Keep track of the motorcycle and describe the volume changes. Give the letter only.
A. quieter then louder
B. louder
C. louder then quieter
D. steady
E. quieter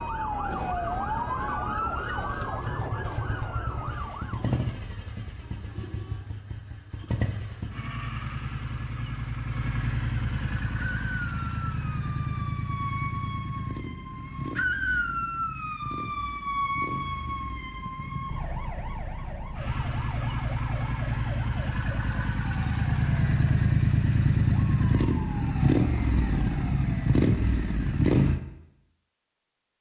B.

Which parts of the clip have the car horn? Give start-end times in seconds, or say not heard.
5.4-6.2.